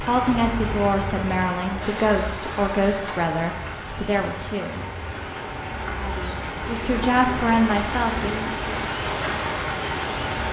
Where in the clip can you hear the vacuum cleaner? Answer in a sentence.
The vacuum cleaner can be heard from 1.8 to 10.4 s.